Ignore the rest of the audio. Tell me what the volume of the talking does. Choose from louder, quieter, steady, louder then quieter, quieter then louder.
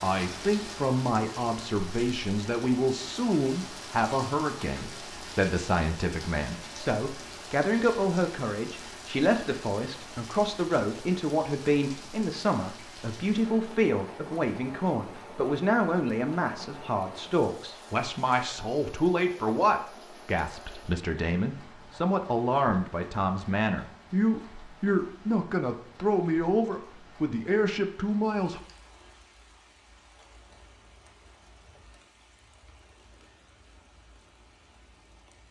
steady.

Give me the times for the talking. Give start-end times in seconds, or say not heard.
0.0-28.6.